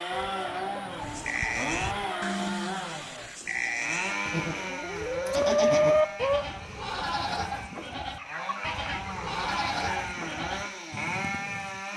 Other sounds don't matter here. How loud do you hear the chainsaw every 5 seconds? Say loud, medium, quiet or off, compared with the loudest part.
loud, medium, loud.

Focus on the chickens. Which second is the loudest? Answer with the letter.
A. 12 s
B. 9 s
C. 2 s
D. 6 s
D.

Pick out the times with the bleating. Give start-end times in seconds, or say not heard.
0.9-11.8.